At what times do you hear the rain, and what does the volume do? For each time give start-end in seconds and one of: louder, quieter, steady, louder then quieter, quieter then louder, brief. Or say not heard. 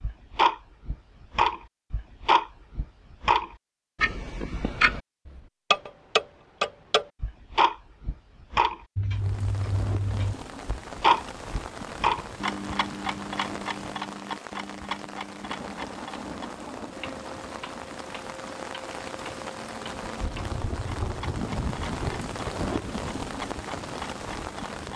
9.1-24.9 louder.